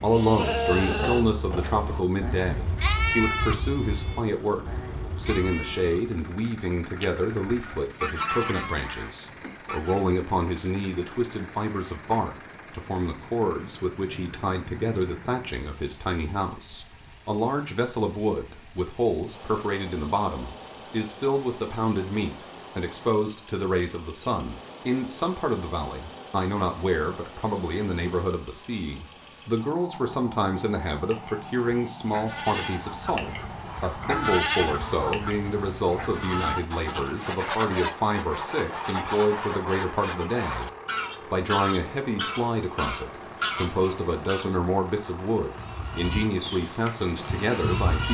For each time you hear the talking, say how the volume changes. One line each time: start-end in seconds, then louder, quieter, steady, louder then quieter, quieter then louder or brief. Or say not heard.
0.0-40.7 steady
41.3-48.0 steady.